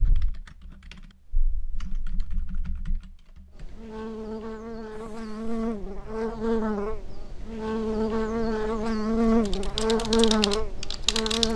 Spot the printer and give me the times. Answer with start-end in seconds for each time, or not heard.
not heard.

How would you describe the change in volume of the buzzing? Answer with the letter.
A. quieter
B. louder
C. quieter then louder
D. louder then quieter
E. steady
B.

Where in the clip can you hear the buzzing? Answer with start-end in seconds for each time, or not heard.
3.5-11.5.